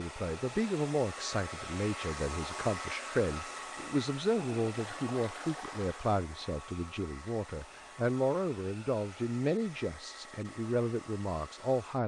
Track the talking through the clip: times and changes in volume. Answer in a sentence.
You can hear the talking from 0.0 to 12.0 s, at a steady volume.